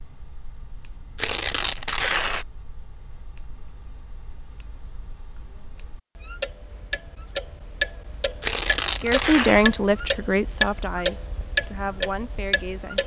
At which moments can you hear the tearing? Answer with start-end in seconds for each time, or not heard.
1.1-2.5, 8.4-9.7.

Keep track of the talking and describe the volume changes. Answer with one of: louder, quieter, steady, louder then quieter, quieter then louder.
quieter.